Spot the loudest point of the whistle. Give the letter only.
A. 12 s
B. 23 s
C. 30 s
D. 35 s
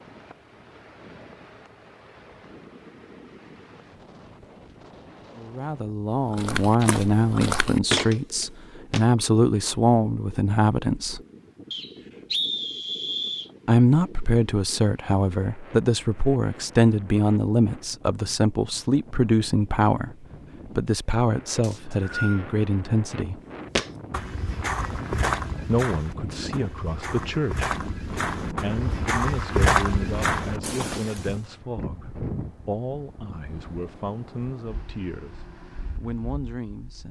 A.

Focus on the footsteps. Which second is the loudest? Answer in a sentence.
The loudest moment of the footsteps is at 30 seconds.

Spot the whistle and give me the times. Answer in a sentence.
The whistle can be heard from 11.7 to 13.5 s and from 21.6 to 22.4 s.